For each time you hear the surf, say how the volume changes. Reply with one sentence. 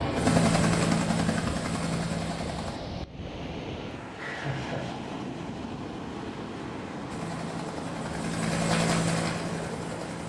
You can hear the surf from 0.0 to 10.2 s, at a steady volume.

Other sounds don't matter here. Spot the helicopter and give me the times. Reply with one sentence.
The helicopter can be heard from 0.0 to 2.8 s and from 7.1 to 10.2 s.